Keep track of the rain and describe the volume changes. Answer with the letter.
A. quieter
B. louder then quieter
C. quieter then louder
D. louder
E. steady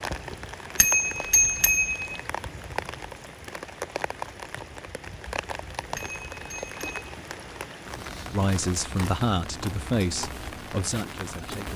E.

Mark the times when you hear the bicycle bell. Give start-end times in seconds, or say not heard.
0.8-2.2, 6.0-7.1.